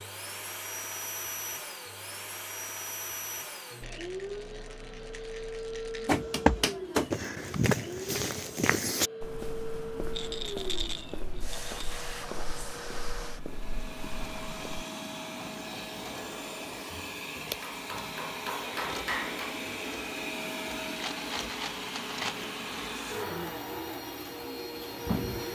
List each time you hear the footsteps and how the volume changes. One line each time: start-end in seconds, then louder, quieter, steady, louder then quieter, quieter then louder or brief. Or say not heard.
6.2-14.8 quieter.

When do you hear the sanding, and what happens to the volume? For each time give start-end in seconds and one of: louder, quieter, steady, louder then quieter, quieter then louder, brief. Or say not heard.
not heard.